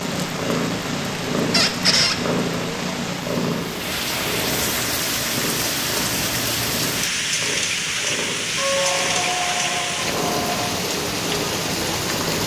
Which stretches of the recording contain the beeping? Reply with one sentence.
You can't hear the beeping here.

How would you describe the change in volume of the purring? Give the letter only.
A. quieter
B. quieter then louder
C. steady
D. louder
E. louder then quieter
A.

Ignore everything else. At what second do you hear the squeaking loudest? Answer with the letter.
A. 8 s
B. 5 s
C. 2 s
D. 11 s
C.